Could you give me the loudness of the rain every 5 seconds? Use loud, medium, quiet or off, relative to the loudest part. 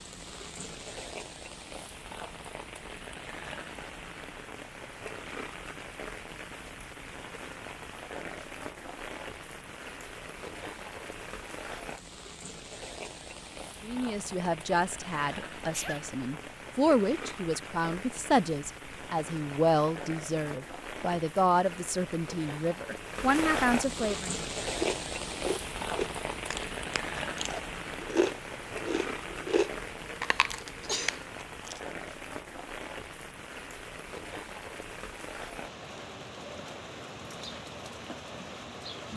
medium, medium, medium, medium, loud, loud, medium, medium.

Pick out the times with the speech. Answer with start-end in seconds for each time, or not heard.
13.8-24.4.